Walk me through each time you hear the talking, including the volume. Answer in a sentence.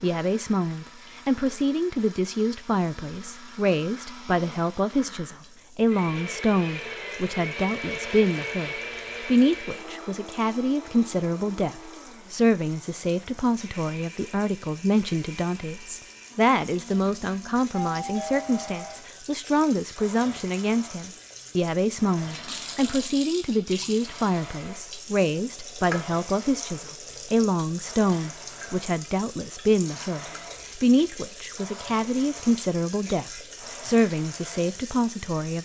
The talking can be heard from 0.0 to 35.5 s, at a steady volume.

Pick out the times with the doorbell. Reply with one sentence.
You can hear the doorbell from 17.7 to 19.0 s.